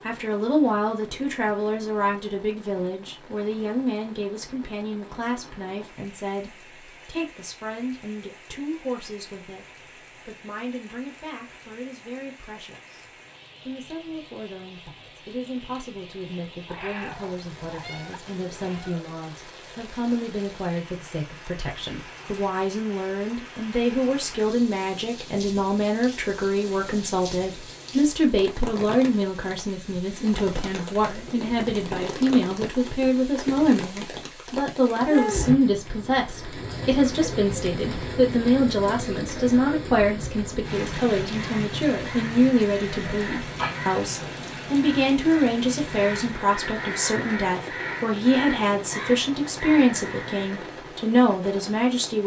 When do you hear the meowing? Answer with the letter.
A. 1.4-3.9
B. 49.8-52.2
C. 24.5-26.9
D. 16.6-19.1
D.